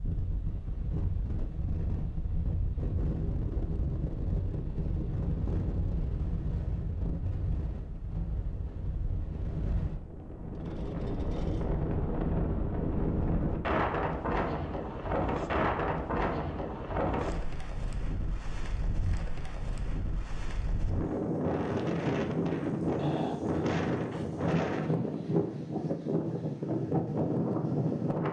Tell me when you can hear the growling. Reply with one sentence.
The growling can be heard from 22.9 to 23.6 s.